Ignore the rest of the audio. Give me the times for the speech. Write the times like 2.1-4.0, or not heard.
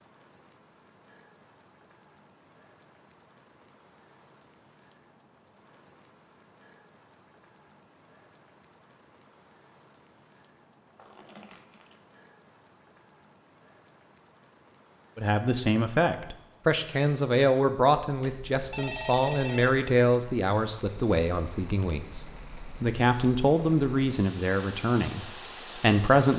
15.2-26.3.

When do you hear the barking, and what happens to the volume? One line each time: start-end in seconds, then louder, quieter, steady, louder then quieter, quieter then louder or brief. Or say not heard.
not heard.